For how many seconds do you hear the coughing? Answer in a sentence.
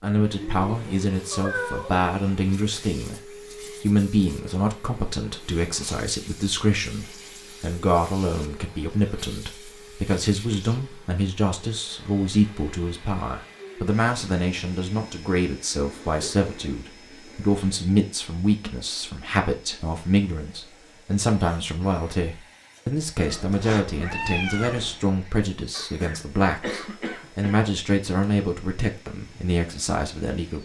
The coughing can be heard for 2 seconds in total.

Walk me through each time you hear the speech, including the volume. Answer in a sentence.
The speech can be heard from 0.0 to 30.6 s, at a steady volume.